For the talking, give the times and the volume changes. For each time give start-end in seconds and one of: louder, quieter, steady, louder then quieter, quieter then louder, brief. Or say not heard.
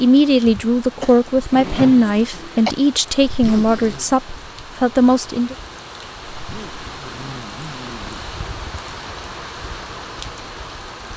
0.0-5.5 steady.